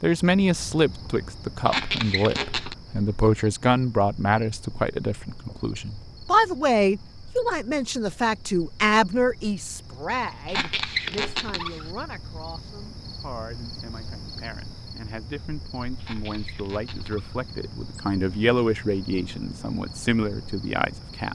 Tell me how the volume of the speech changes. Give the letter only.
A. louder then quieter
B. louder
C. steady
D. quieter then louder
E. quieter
D.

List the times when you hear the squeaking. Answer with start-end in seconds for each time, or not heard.
1.6-2.8, 10.4-11.9, 16.0-17.4.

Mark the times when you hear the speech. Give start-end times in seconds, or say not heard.
0.0-21.3.